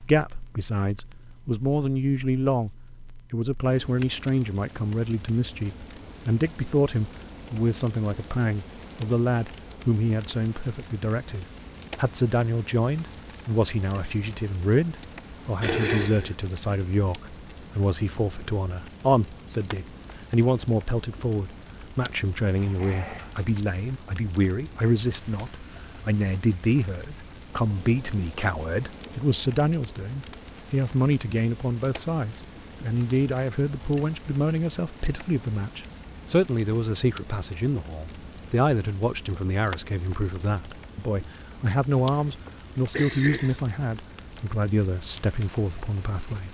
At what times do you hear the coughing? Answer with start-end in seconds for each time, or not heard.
15.6-16.4, 42.0-43.7.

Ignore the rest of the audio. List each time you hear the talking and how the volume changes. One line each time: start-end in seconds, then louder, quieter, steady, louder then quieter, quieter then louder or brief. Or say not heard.
0.0-2.7 brief
3.3-46.4 steady.